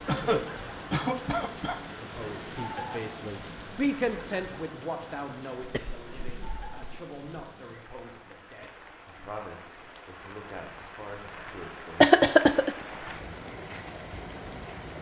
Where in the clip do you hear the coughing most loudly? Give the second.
12 s.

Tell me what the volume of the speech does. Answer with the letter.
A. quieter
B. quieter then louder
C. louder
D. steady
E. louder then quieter
A.